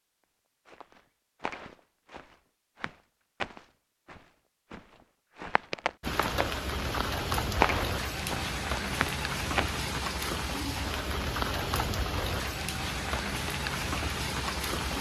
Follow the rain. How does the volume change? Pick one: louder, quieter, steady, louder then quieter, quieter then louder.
steady.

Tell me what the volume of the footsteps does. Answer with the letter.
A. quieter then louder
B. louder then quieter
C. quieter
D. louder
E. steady
B.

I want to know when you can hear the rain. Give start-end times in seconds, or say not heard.
6.0-14.9.